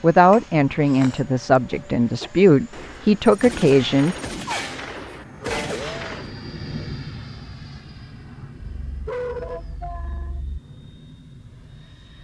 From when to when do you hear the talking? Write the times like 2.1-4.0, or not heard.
0.0-4.2.